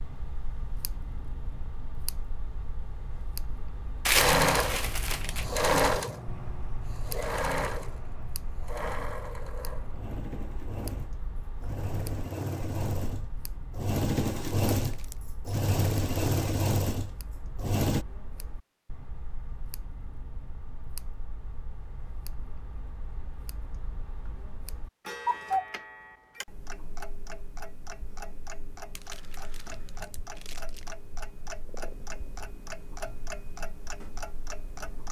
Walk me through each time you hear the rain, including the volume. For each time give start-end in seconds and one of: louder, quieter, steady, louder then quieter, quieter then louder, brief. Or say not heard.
not heard.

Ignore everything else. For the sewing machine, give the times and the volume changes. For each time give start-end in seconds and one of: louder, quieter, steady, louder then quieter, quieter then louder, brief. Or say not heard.
4.1-18.1 quieter then louder.